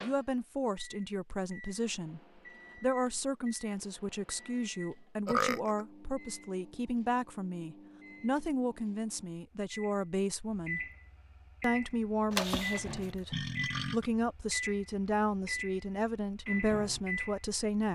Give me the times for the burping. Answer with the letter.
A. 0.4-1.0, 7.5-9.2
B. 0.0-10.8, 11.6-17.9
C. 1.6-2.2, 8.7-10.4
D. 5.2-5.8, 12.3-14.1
D.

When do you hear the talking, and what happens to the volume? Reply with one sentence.
The talking can be heard from 0.0 to 10.8 s, at a steady volume; and from 11.6 to 17.9 s, at a steady volume.